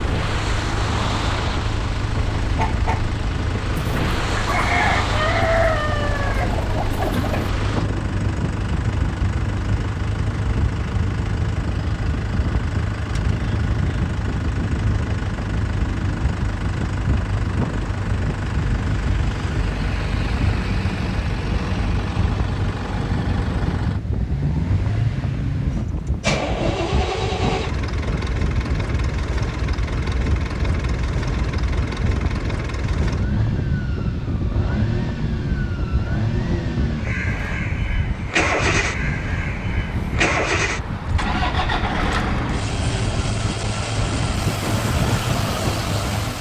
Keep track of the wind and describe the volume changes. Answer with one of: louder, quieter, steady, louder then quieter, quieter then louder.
steady.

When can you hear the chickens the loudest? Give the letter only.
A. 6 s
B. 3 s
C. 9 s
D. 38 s
A.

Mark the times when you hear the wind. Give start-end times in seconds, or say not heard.
0.0-46.3.